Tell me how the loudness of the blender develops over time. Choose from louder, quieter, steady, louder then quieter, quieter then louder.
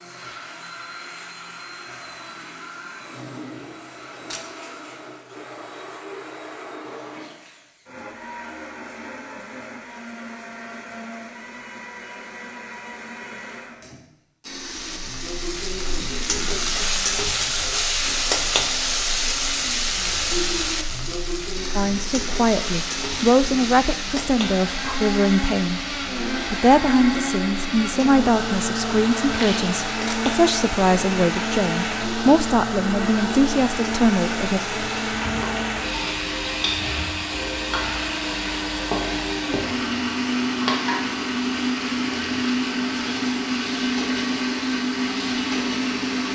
louder.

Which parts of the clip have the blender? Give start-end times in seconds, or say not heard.
0.0-46.2.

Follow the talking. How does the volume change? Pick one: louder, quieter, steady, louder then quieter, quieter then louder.
steady.